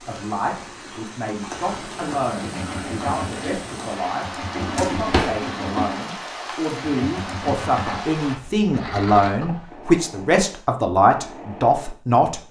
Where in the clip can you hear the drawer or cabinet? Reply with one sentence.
You can hear the drawer or cabinet from 4.5 to 5.4 s.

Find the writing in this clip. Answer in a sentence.
The writing can't be heard in this clip.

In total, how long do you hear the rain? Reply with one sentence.
You can hear the rain for 8 seconds altogether.